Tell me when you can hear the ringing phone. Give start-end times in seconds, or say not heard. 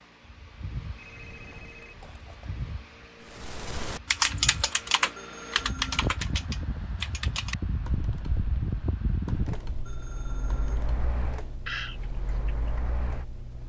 0.9-2.6, 5.2-6.0, 9.8-10.9.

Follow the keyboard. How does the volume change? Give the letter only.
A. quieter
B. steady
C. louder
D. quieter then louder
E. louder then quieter
D.